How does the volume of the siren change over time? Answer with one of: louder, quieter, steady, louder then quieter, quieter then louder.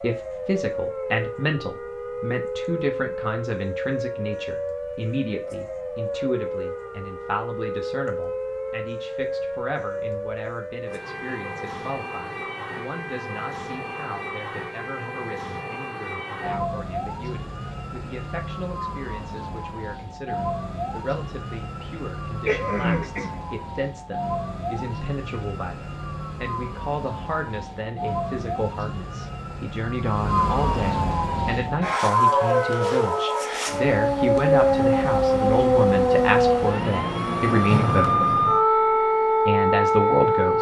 louder.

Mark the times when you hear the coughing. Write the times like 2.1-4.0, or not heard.
22.4-23.4.